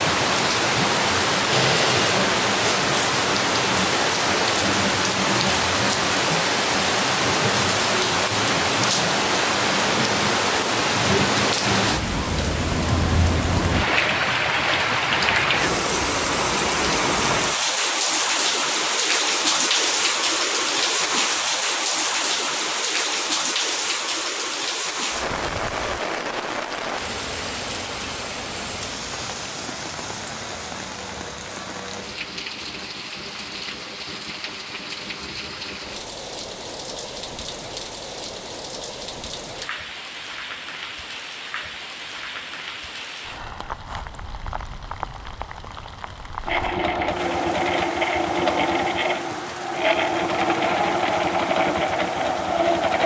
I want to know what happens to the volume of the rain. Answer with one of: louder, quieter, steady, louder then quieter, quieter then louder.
quieter.